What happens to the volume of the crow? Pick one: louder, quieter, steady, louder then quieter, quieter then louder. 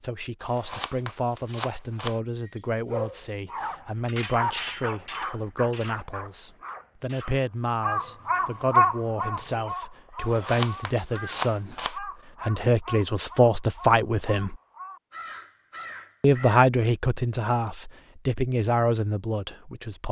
quieter.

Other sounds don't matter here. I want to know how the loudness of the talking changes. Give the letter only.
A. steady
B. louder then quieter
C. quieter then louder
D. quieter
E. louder
E.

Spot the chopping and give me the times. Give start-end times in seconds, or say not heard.
0.4-2.2, 10.2-12.0.